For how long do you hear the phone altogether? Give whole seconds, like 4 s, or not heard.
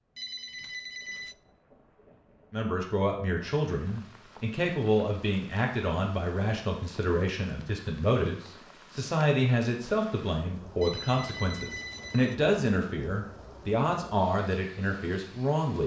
3 s.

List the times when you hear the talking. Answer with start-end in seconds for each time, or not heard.
2.5-15.8.